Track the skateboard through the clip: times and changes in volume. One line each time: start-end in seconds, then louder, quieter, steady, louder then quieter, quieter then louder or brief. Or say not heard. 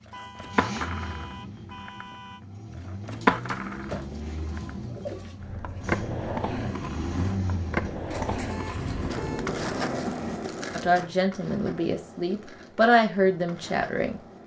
0.1-14.4 louder then quieter.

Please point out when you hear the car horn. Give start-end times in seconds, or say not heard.
0.1-2.4, 8.4-9.6.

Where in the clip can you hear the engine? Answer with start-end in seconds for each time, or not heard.
0.0-10.3.